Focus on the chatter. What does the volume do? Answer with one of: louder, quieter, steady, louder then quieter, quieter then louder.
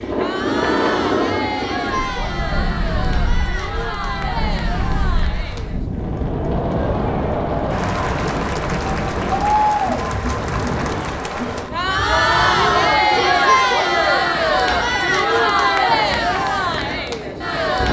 louder.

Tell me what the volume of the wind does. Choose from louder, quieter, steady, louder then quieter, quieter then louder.
quieter.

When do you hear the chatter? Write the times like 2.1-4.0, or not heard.
0.0-17.8.